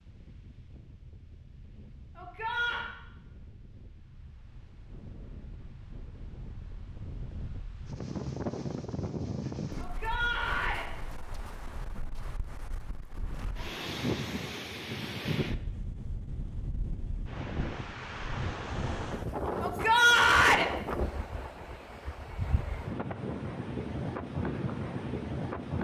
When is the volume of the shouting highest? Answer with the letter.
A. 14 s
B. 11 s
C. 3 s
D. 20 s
D.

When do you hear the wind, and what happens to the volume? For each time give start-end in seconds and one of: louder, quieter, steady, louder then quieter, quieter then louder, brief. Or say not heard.
0.0-25.7 louder.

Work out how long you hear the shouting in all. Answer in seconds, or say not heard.
3 s.